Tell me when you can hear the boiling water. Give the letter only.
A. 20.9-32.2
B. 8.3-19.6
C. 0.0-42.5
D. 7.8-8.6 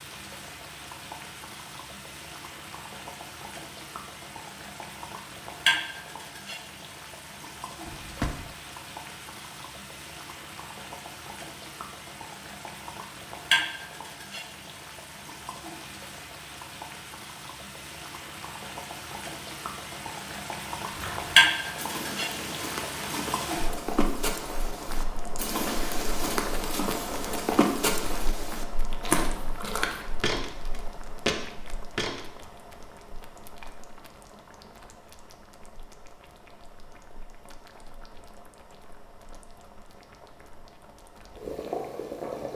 C.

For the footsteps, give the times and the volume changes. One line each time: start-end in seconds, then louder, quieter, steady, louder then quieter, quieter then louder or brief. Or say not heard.
20.9-32.2 louder.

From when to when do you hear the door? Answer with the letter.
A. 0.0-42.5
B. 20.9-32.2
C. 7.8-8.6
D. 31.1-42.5
C.